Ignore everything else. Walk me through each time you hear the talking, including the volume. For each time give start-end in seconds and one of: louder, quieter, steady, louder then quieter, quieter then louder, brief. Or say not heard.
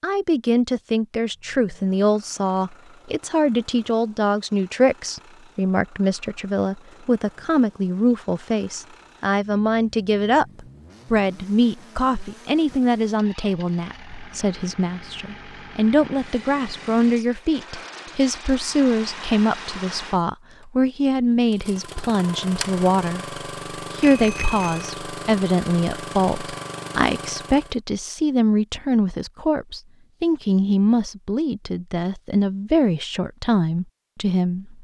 0.0-34.7 steady.